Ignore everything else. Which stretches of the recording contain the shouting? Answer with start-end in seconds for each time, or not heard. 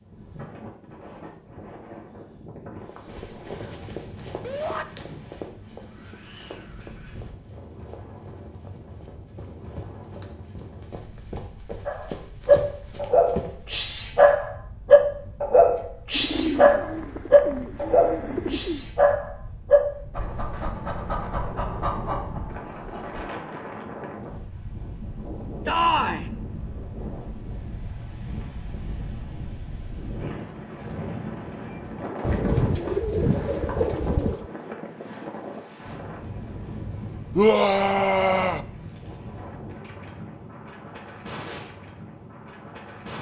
4.4-4.8, 25.6-26.2, 37.4-38.6.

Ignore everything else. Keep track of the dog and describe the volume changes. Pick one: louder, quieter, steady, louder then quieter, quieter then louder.
quieter.